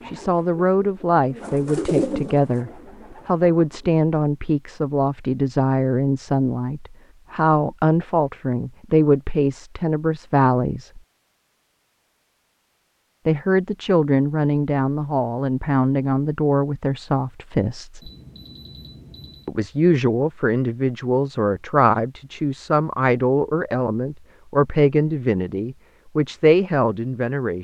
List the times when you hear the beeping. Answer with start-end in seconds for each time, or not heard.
18.0-19.5.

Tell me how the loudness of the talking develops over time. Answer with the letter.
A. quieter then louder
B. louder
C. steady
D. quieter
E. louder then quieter
C.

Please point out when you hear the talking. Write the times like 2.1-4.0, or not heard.
0.1-11.0, 13.2-18.1, 19.4-27.6.